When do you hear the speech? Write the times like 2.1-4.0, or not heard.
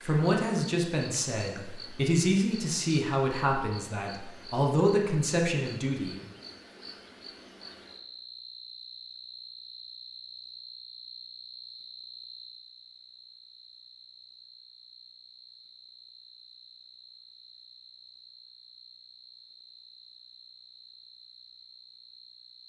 0.0-6.2.